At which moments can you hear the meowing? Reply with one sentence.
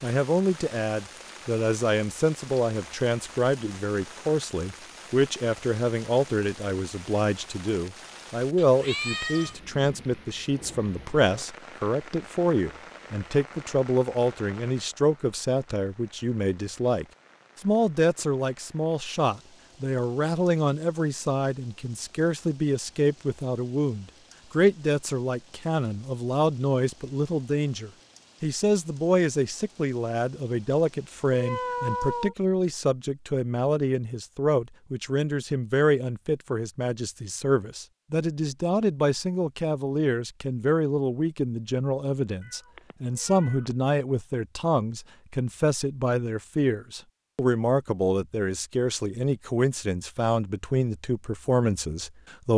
You can hear the meowing from 8.6 to 9.6 s, from 31.3 to 32.4 s and from 42.4 to 43.8 s.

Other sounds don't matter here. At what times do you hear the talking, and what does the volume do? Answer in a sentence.
The talking can be heard from 0.0 to 52.5 s, at a steady volume.